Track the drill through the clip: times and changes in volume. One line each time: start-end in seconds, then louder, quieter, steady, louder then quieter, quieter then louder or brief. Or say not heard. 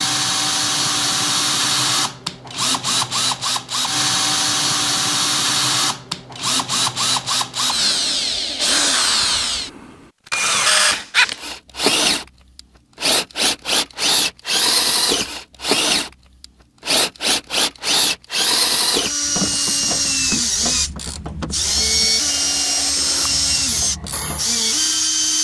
0.0-25.4 steady.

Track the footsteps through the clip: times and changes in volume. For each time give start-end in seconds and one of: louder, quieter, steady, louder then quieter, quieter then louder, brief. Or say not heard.
not heard.